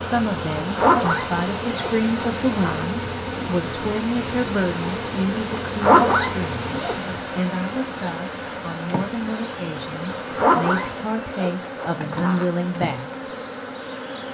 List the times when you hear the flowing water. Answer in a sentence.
You can hear the flowing water from 0.0 to 11.2 s.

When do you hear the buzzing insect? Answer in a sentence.
You can hear the buzzing insect from 0.0 to 14.3 s.